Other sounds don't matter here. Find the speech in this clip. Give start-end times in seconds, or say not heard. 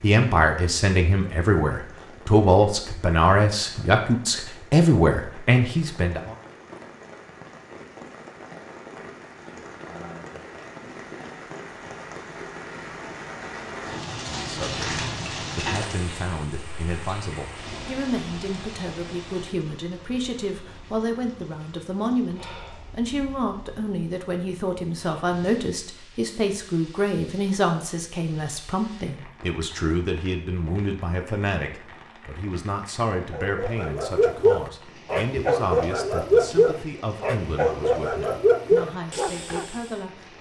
0.0-6.3, 14.1-40.3.